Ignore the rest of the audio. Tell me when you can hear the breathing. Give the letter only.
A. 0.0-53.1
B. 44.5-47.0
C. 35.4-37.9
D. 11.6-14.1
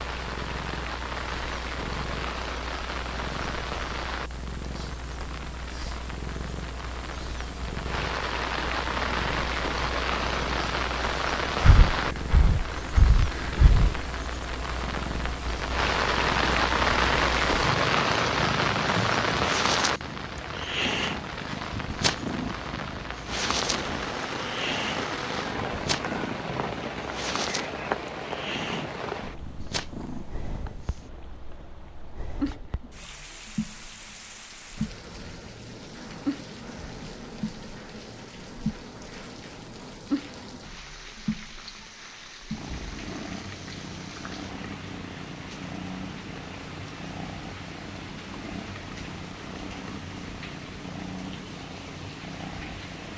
D.